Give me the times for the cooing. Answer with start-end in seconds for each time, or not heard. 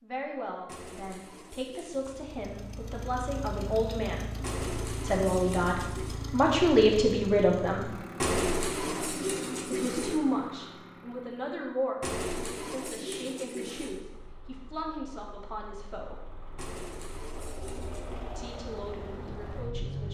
0.7-2.2, 4.4-6.2, 8.2-10.2, 12.0-14.0, 16.6-18.2.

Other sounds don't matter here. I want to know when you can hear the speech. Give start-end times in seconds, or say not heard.
0.0-8.0, 9.7-16.2, 18.4-20.0.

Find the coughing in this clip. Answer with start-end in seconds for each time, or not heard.
not heard.